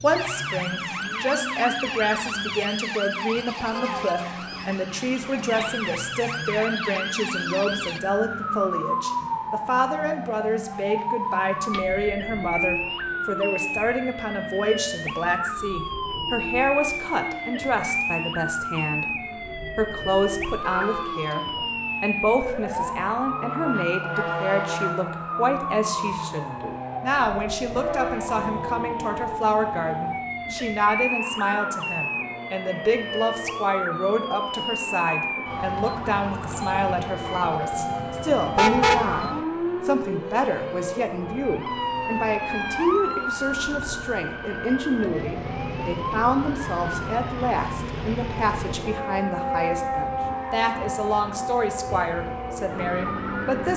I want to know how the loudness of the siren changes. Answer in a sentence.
The volume of the siren stays about the same.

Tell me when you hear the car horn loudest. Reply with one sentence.
The volume of the car horn peaks at 39 seconds.